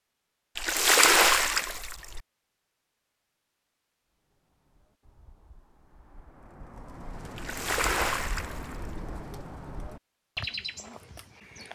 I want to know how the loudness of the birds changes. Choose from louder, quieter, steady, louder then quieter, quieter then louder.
louder.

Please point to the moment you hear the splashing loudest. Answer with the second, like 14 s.
1 s.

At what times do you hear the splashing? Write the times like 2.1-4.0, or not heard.
0.6-2.2, 7.3-9.1.